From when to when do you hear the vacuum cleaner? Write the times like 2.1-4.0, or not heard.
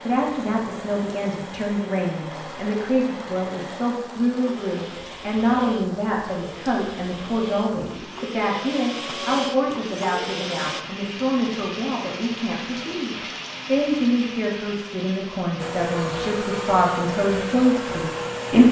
0.0-10.8, 15.6-18.6.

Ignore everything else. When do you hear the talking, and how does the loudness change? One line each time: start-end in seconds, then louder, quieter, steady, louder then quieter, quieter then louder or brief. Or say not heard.
0.1-18.6 steady.